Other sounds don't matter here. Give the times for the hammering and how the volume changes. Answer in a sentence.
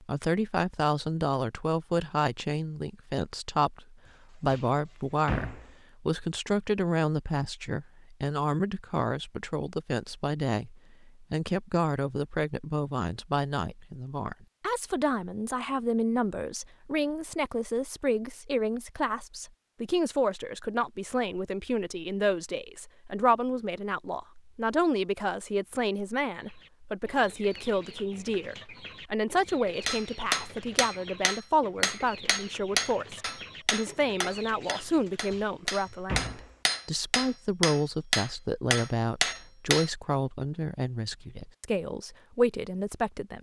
You can hear the hammering from 29.9 to 39.9 s, getting quieter then louder.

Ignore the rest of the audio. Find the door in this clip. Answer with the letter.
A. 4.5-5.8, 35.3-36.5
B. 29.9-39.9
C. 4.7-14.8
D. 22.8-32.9
A.